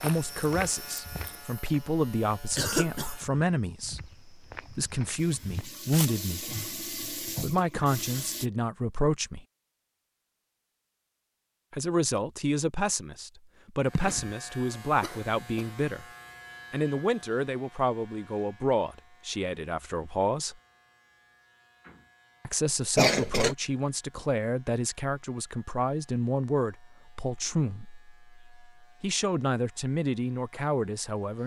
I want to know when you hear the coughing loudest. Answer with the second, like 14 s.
23 s.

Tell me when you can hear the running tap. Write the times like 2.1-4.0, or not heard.
5.2-8.5.